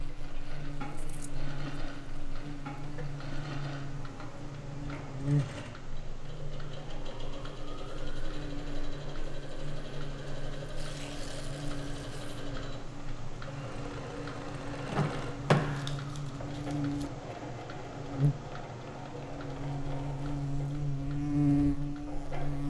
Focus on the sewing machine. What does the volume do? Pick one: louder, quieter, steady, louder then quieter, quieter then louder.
steady.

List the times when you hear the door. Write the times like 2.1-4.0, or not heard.
14.8-15.9.